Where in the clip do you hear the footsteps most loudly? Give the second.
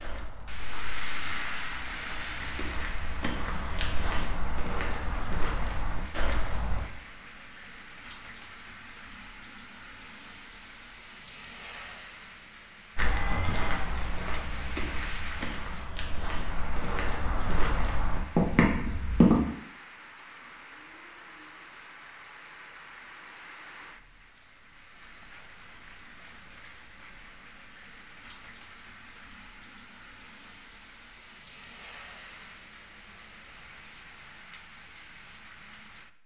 19 s.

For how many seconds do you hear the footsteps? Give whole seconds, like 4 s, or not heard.
13 s.